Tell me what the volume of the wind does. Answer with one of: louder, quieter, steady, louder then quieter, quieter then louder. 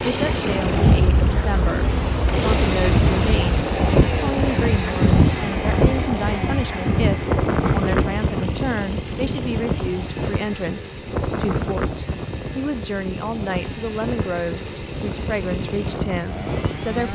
quieter.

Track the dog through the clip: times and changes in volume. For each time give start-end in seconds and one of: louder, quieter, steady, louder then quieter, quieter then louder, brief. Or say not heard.
not heard.